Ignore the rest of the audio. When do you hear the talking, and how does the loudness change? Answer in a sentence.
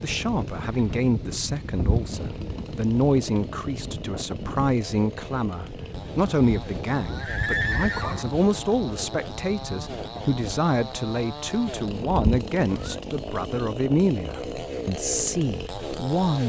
You can hear the talking from 0.0 to 16.4 s, at a steady volume.